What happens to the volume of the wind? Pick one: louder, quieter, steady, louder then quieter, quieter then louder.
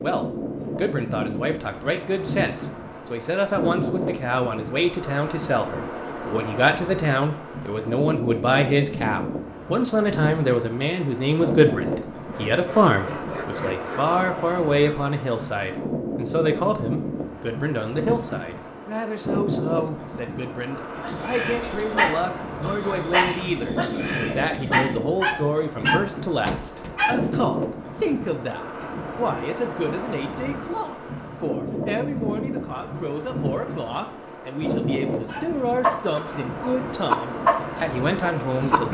steady.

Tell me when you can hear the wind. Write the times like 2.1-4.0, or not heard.
0.0-38.8.